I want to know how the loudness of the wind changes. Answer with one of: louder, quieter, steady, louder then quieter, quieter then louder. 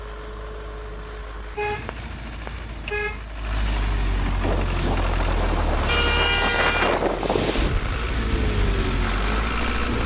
louder then quieter.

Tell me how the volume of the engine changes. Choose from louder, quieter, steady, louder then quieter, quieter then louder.
louder.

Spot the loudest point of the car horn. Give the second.
6 s.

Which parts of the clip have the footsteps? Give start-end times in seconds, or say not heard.
not heard.